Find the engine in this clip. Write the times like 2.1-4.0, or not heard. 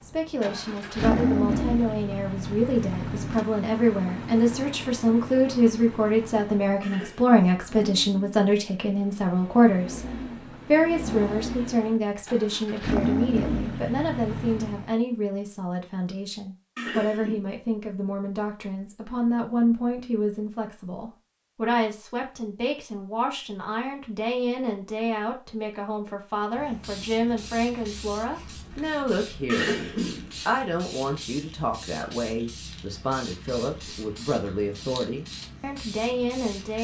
0.1-14.9.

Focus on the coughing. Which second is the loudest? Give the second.
30 s.